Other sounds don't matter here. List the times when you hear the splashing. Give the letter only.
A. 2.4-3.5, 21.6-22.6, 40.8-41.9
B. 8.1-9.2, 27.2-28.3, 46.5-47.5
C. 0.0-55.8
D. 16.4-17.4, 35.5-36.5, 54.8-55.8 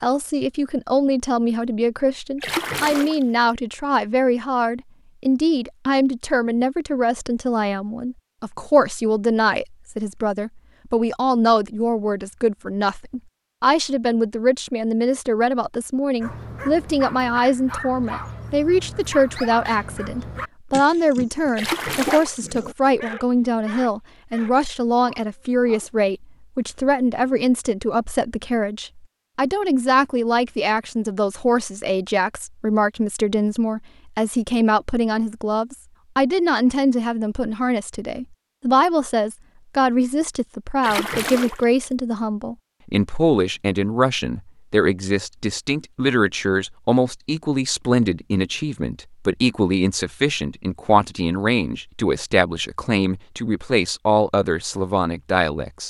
A.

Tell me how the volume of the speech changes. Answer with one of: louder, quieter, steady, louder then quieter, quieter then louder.
steady.